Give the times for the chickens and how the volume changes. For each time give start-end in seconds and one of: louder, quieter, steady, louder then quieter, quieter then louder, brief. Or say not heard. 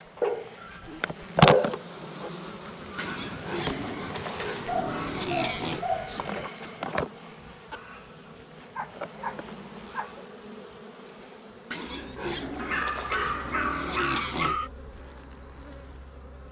not heard.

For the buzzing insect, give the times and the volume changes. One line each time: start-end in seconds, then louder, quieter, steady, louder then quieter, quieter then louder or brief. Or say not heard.
0.0-16.4 quieter.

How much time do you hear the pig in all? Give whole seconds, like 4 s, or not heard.
6 s.